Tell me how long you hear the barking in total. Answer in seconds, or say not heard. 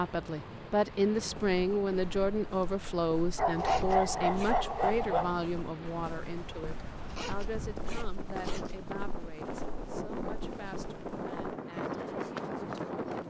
2 s.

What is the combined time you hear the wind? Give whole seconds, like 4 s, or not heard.
13 s.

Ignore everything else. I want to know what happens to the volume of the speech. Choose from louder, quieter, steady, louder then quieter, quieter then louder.
quieter.